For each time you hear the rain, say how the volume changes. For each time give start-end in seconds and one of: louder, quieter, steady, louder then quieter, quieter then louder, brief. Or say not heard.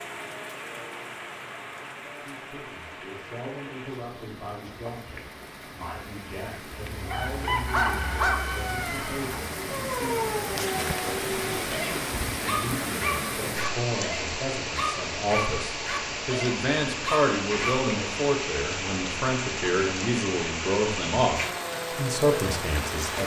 0.0-23.2 louder.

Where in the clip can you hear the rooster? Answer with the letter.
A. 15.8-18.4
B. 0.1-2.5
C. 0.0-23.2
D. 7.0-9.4
D.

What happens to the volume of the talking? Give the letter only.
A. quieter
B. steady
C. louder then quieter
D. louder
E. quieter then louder
D.